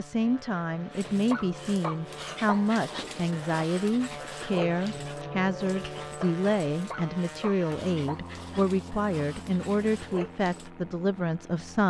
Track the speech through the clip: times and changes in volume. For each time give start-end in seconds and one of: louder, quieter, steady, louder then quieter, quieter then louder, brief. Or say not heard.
0.0-11.8 steady.